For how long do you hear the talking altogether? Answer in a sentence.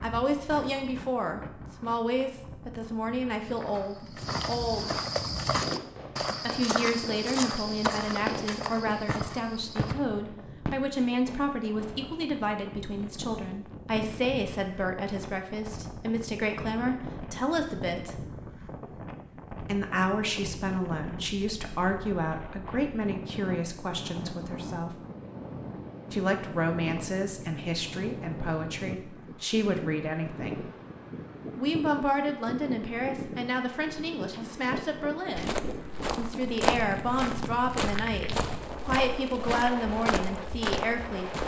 You can hear the talking for 36 seconds altogether.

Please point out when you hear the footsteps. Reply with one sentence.
The footsteps can be heard from 3.4 to 9.9 s and from 35.4 to 41.4 s.